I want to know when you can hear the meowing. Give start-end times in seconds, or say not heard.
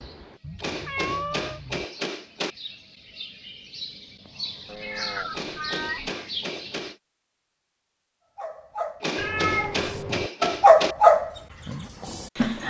0.4-1.9, 4.7-6.1, 9.2-10.3.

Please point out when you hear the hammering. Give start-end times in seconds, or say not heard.
0.6-2.5, 5.3-7.0, 9.0-10.9.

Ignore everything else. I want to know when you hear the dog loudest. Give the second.
11 s.